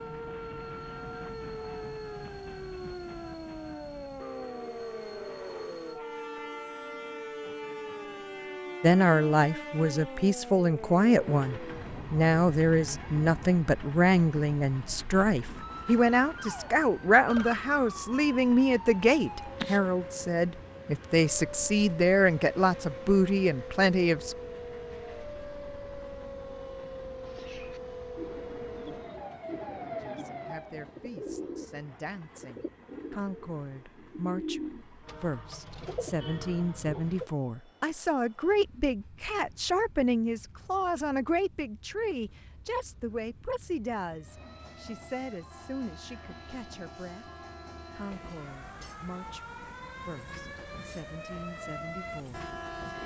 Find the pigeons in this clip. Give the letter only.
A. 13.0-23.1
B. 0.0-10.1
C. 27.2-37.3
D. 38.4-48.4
C.